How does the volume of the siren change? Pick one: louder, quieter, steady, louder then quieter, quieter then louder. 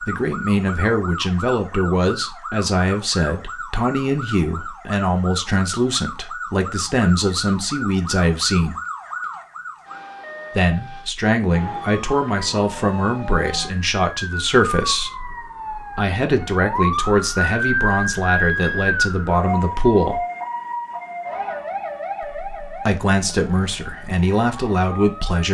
louder then quieter.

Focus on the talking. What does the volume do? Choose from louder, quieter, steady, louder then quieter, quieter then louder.
steady.